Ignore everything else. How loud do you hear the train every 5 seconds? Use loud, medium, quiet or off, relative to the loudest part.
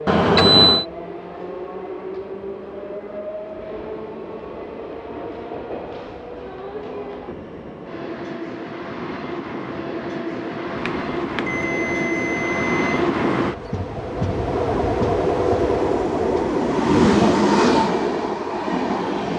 quiet, quiet, medium, loud.